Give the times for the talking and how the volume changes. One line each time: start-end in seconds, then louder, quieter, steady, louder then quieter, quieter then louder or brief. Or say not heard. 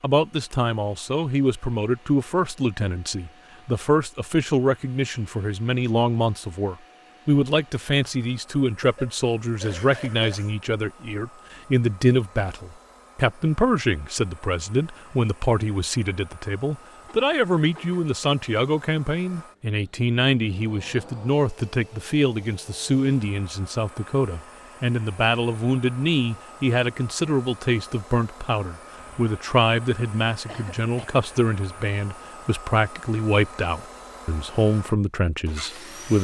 0.0-36.1 steady.